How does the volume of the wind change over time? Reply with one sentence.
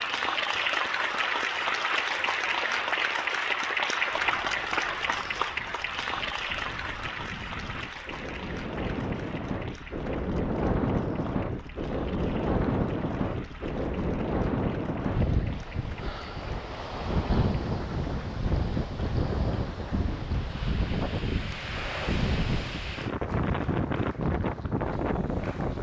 The volume of the wind goes up.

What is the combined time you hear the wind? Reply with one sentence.
The wind can be heard for 22 seconds in total.